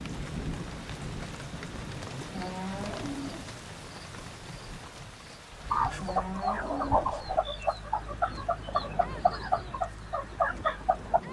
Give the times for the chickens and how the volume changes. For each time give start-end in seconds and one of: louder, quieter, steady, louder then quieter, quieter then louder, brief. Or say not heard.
5.6-11.2 steady.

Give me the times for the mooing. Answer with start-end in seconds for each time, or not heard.
2.0-3.5, 5.7-7.2.